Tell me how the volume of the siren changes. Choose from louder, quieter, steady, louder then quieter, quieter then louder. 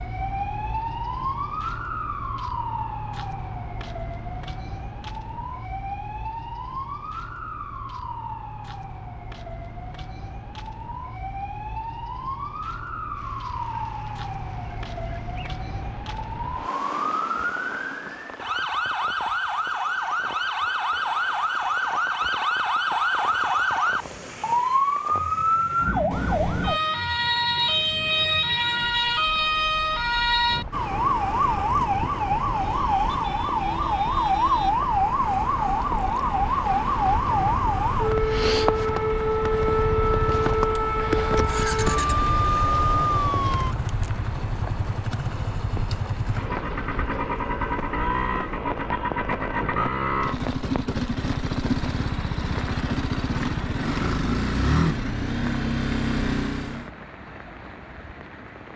louder.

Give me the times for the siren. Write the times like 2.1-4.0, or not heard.
0.0-43.8.